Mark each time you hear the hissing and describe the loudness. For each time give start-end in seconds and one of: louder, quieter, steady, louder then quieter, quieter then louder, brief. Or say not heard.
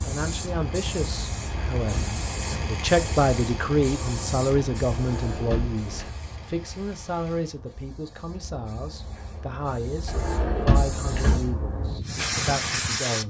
0.0-13.2 quieter then louder.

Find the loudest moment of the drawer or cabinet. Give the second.
11 s.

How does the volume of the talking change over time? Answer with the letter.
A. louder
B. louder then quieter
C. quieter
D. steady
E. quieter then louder
B.